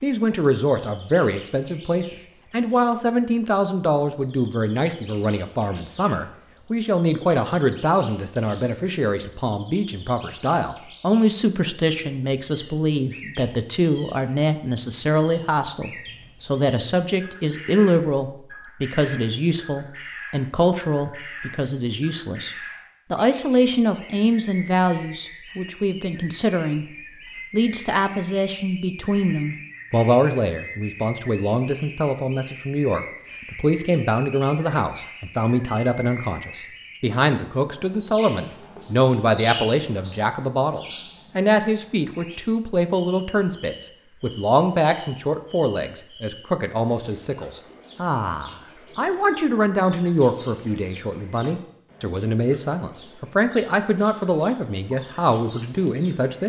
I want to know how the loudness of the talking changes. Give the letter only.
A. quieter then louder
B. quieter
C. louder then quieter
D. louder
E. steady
E.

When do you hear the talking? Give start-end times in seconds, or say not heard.
0.0-26.9, 27.5-56.4.